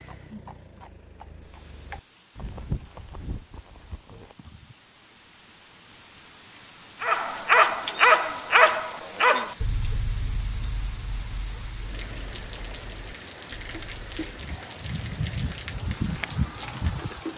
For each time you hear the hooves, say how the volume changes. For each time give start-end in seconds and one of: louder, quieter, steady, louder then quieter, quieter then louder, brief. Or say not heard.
0.0-4.8 louder then quieter
14.3-17.2 brief.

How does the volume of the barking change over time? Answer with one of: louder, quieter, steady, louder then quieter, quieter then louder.
quieter.